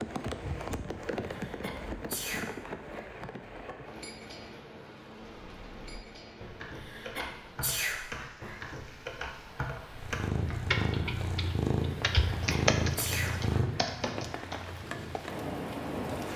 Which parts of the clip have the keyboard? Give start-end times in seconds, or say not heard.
5.2-14.6.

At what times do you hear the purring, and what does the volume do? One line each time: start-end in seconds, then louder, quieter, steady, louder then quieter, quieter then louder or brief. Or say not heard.
9.9-16.3 quieter.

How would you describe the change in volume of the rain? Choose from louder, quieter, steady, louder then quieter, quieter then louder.
quieter then louder.